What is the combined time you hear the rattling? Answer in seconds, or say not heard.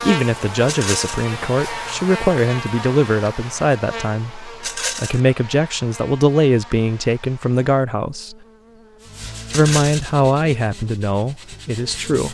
2 s.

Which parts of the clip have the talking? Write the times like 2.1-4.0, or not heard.
0.0-8.3, 9.5-12.2.